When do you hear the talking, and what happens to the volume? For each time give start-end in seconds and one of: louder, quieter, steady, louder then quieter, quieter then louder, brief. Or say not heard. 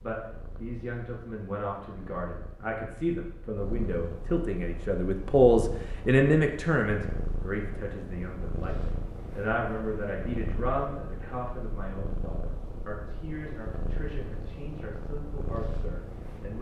0.0-16.5 louder then quieter.